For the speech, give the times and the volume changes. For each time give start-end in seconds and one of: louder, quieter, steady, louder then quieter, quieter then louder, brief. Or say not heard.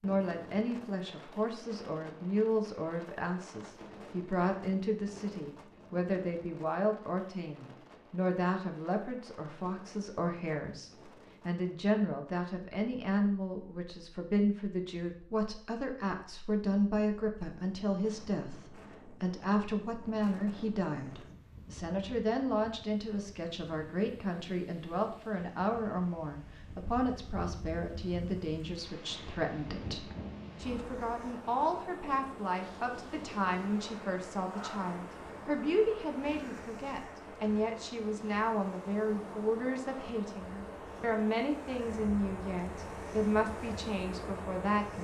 0.0-44.9 steady.